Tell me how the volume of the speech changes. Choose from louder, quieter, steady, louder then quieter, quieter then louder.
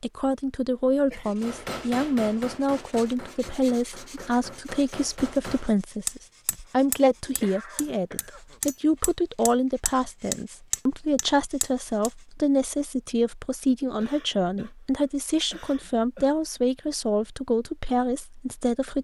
steady.